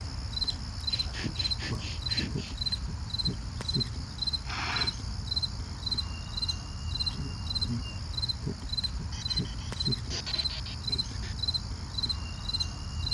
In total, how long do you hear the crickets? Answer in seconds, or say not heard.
13 s.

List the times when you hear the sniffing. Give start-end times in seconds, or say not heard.
0.5-2.8, 4.5-5.0, 9.1-11.3.